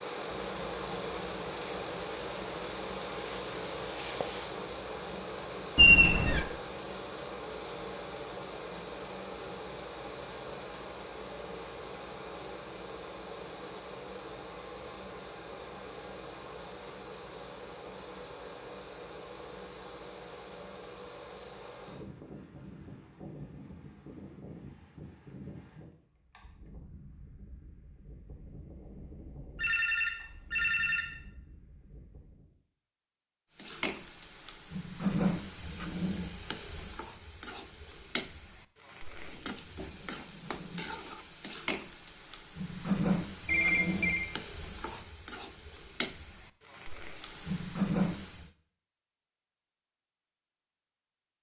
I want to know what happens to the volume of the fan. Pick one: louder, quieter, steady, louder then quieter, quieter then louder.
quieter.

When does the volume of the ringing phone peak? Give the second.
6 s.